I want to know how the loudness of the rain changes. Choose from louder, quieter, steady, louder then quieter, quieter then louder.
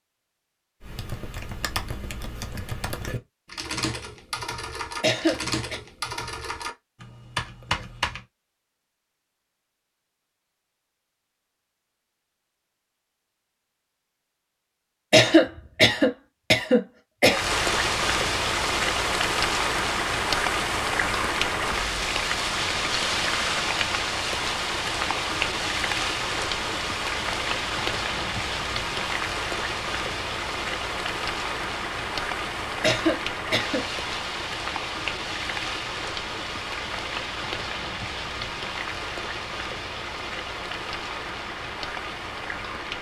quieter.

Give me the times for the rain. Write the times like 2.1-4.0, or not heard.
17.2-42.9.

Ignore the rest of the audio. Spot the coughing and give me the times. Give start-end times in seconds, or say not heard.
5.0-5.8, 15.1-17.4, 32.8-33.8.